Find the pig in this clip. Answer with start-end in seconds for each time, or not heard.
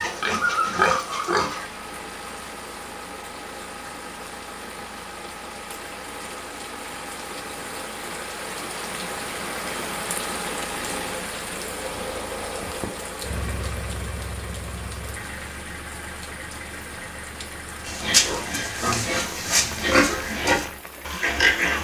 0.0-1.6, 17.9-21.7.